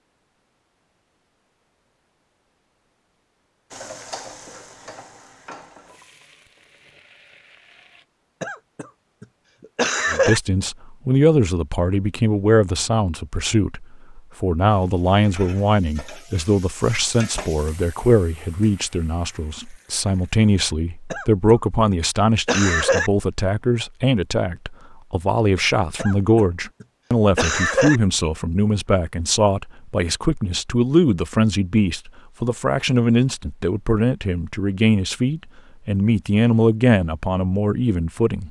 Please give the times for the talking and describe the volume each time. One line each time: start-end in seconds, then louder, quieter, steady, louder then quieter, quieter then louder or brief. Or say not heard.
10.1-38.4 steady.